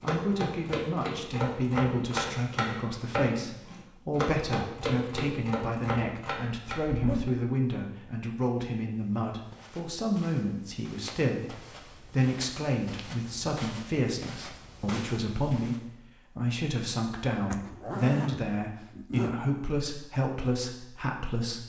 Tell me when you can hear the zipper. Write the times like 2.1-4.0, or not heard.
6.8-7.5, 17.5-19.4.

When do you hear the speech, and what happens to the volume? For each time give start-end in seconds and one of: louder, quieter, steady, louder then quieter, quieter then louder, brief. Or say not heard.
0.0-21.6 steady.